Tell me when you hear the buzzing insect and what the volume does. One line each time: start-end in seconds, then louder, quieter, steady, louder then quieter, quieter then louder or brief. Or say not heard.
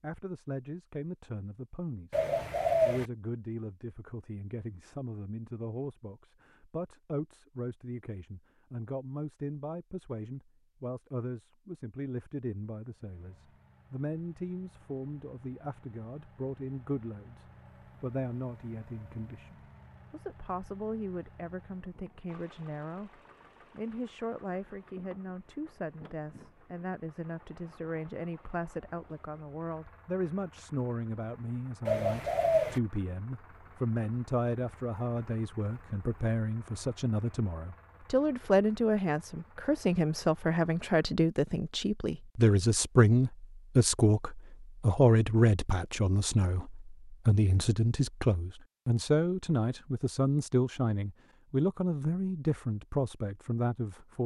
not heard.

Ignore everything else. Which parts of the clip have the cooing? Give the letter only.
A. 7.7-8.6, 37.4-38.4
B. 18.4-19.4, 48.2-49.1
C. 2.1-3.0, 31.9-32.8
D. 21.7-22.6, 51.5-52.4
C.